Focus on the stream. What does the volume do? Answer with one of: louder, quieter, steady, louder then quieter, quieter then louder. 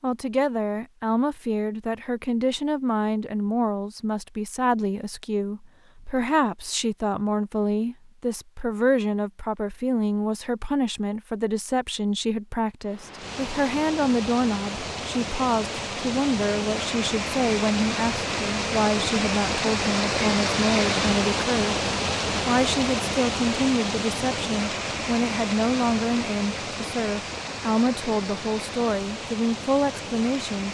louder then quieter.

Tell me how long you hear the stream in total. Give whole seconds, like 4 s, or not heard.
18 s.